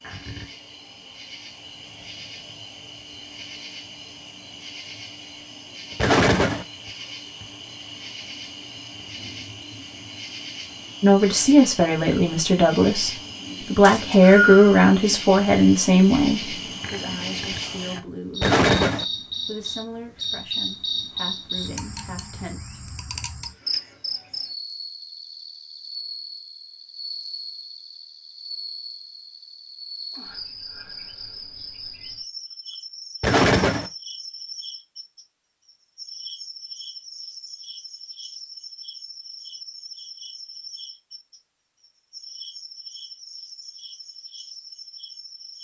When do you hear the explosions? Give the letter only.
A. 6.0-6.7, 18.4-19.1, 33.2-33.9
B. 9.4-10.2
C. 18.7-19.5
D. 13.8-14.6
A.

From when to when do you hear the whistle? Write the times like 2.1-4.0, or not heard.
13.8-14.6.